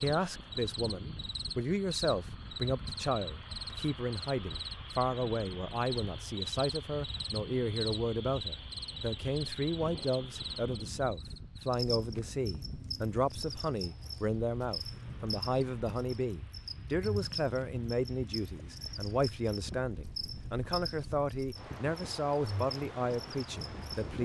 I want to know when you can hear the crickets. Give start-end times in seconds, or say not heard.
0.0-24.1.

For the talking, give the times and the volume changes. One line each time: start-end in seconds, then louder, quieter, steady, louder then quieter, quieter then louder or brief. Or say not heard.
0.0-24.1 steady.